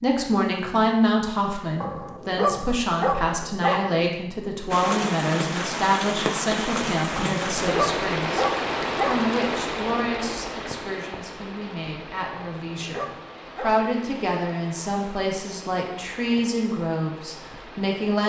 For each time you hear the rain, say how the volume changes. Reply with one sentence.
You can hear the rain from 4.7 to 18.2 s, getting quieter.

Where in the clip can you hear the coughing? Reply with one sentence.
The coughing can't be heard in this clip.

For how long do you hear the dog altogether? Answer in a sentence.
You can hear the dog for 6 seconds altogether.